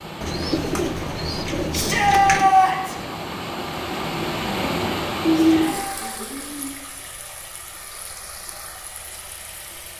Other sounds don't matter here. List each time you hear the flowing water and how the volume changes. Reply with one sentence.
You can hear the flowing water from 0.0 to 9.9 s, getting louder then quieter.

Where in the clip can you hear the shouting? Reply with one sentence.
You can hear the shouting from 1.7 to 3.0 s and from 5.3 to 6.0 s.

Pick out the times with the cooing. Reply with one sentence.
You can hear the cooing from 0.2 to 2.5 s and from 5.2 to 6.8 s.